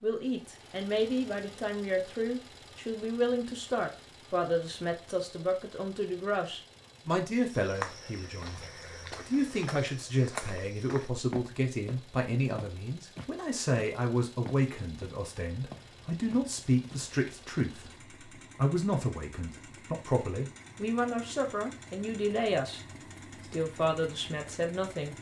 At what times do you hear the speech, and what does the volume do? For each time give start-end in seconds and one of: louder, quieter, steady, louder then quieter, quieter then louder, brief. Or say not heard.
0.0-25.1 steady.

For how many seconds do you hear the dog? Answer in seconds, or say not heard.
not heard.